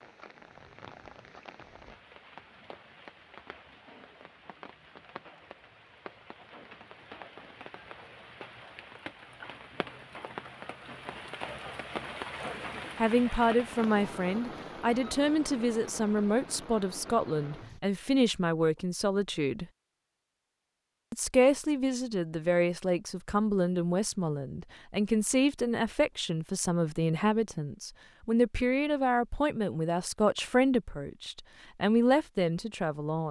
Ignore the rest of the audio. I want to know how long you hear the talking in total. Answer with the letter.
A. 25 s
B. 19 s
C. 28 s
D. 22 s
B.